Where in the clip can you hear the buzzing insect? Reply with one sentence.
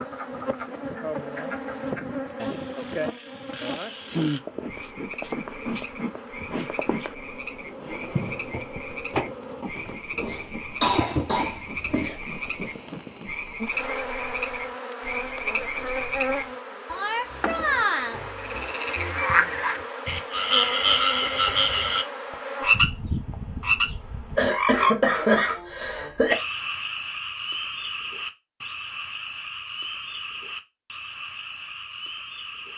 The buzzing insect can be heard from 0.0 to 24.4 s.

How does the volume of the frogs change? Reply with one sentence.
The volume of the frogs goes up, then down.